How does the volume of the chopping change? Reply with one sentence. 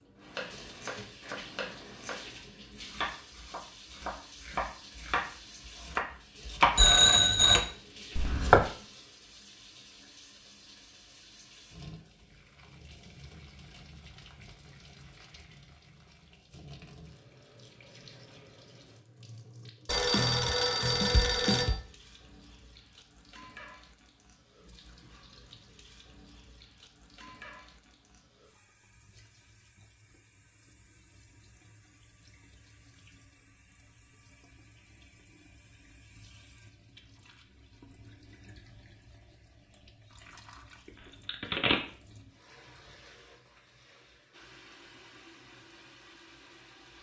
The volume of the chopping goes up, then down.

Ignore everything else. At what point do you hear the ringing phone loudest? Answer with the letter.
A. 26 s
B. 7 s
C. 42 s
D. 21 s
B.